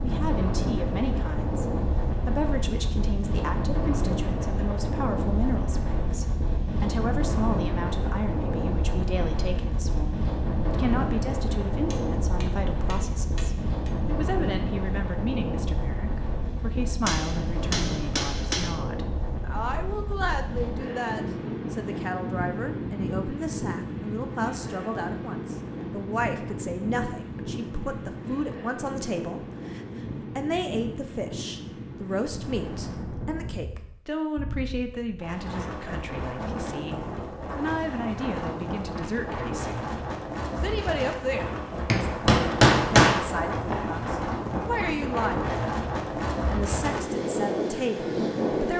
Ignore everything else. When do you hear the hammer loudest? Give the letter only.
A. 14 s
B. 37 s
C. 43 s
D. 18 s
C.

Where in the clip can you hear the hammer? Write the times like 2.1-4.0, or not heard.
11.9-13.9, 17.1-18.8, 41.9-43.8.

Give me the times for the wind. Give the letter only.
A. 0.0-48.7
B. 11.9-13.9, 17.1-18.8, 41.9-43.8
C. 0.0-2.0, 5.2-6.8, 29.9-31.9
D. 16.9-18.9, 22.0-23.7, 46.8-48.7
A.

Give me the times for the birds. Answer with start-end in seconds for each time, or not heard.
not heard.